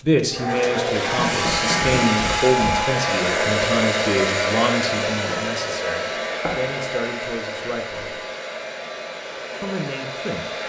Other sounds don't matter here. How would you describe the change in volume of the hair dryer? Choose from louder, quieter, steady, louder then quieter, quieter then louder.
quieter.